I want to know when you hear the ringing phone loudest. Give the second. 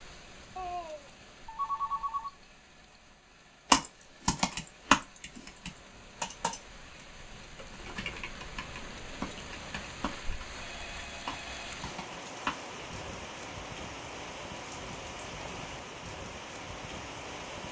2 s.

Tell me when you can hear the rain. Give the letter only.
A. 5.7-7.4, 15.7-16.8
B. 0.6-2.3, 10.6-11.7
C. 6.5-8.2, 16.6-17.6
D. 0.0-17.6
D.